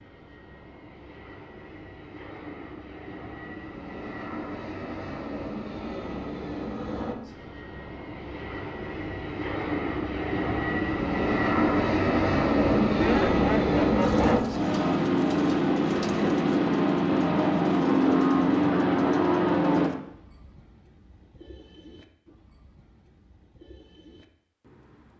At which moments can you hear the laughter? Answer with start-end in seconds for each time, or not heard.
12.8-14.4.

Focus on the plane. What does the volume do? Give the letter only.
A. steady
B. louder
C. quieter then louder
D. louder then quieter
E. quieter
B.